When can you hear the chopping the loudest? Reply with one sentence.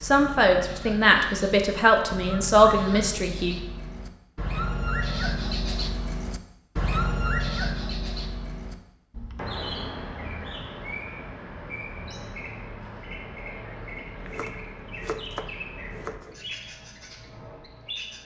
The loudest moment of the chopping is at 15 seconds.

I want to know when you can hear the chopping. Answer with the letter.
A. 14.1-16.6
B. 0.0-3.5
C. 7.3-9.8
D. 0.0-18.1
A.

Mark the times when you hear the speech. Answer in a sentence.
You can hear the speech from 0.0 to 3.5 s.